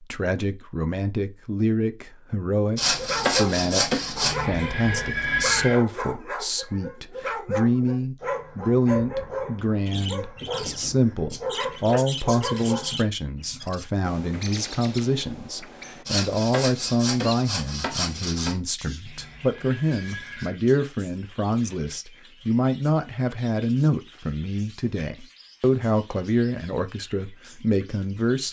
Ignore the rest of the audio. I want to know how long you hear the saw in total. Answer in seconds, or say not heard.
4 s.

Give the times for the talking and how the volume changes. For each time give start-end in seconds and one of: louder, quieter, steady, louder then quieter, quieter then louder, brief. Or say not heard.
0.0-28.4 steady.